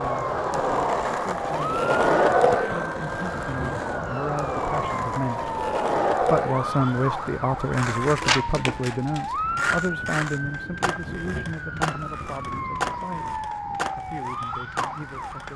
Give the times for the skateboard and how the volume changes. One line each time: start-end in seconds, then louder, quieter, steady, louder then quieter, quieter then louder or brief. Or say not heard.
0.0-15.5 quieter.